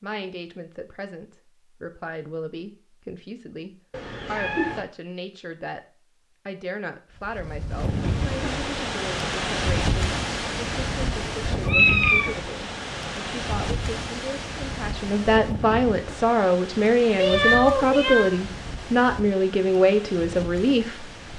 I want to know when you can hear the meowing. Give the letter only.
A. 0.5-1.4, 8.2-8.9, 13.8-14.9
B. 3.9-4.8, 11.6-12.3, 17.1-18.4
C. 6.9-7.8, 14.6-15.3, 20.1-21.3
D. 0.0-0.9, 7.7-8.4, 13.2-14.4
B.